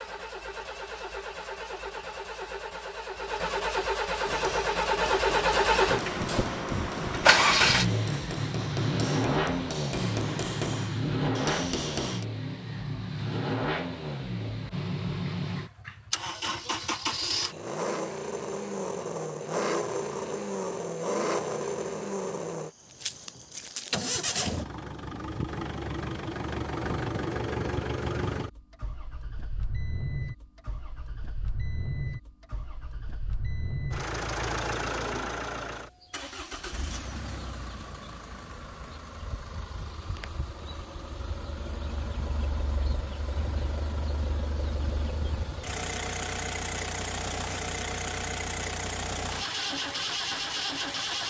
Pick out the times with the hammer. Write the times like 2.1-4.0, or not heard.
4.2-12.2.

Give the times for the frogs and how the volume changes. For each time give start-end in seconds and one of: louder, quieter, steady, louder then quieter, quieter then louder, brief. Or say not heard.
not heard.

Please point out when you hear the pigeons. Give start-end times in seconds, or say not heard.
not heard.